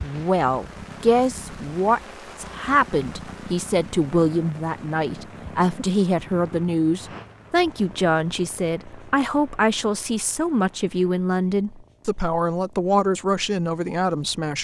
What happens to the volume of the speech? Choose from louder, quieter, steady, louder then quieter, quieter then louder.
steady.